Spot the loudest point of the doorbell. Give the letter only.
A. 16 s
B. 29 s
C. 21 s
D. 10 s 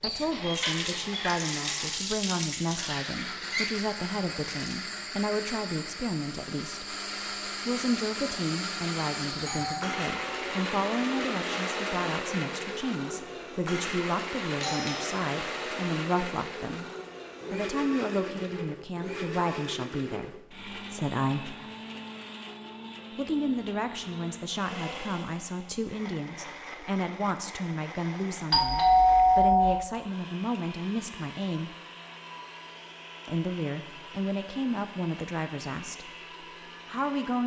B.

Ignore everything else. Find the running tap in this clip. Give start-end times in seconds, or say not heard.
0.0-4.8.